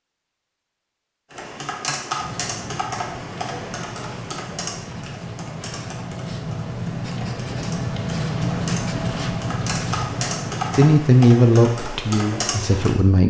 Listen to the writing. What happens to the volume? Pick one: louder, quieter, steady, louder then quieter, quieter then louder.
louder.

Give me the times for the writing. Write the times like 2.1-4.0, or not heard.
2.1-10.9.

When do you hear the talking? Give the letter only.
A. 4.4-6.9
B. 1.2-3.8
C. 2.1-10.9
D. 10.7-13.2
D.